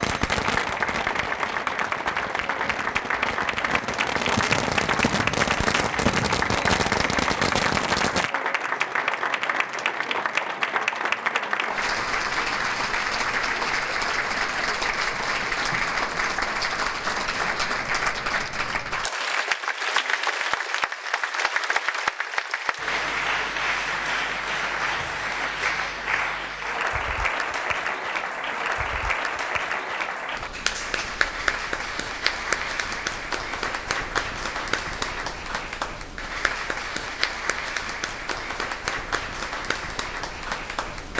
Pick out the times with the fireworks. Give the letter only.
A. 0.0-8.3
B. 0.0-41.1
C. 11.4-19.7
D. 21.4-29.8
A.